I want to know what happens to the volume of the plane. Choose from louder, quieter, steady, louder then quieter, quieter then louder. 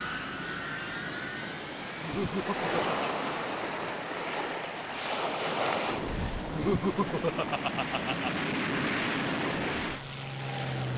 quieter then louder.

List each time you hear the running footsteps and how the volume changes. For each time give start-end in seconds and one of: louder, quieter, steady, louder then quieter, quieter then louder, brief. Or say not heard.
not heard.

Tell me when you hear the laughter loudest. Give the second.
7 s.